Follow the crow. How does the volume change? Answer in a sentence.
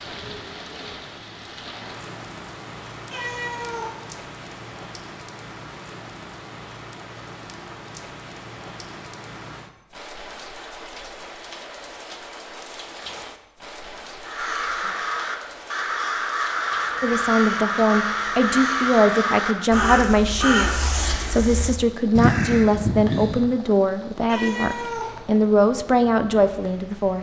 The loudness of the crow stays about the same.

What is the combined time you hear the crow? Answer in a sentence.
The crow can be heard for 9 seconds in total.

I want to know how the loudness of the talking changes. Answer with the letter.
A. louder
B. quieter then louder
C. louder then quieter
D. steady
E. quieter
D.